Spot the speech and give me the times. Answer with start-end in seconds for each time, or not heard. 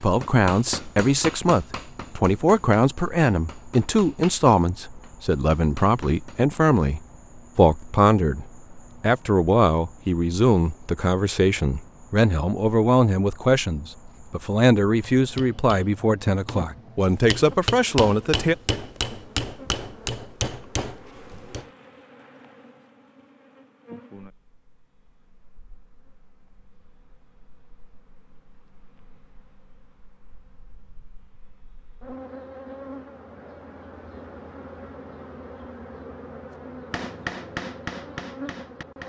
0.0-18.6.